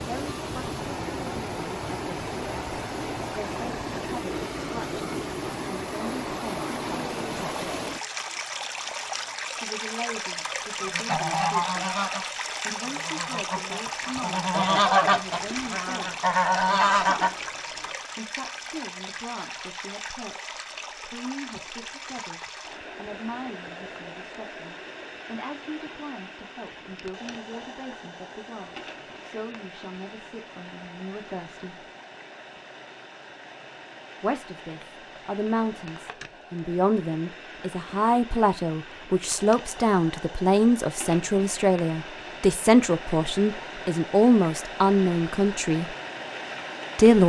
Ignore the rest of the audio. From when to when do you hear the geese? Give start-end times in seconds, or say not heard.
10.8-17.9.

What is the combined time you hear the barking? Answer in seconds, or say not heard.
not heard.